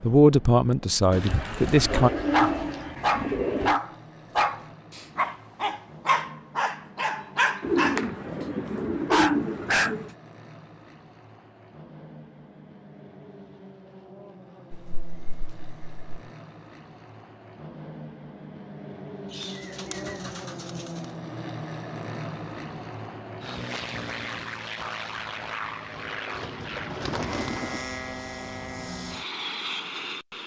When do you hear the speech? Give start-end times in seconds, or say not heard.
0.0-2.1.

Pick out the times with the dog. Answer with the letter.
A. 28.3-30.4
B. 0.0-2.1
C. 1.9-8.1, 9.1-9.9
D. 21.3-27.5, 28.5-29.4
C.